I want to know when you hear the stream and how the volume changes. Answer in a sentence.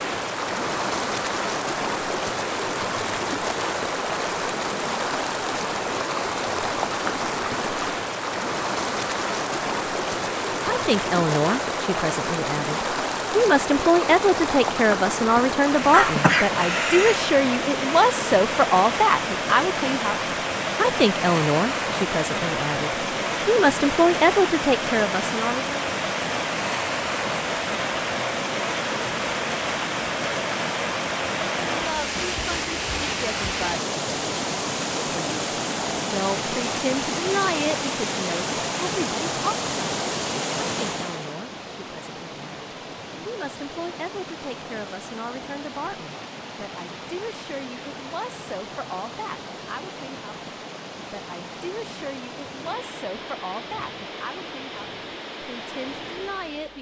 The stream can be heard from 0.0 to 56.7 s, getting quieter.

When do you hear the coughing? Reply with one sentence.
You can hear the coughing from 15.9 to 17.2 s.